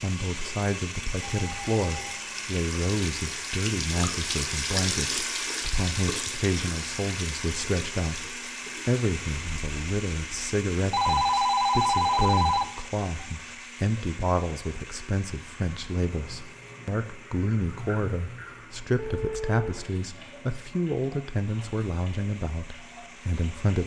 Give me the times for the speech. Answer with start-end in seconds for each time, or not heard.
0.0-23.8.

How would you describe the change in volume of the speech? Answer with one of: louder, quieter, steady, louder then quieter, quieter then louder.
steady.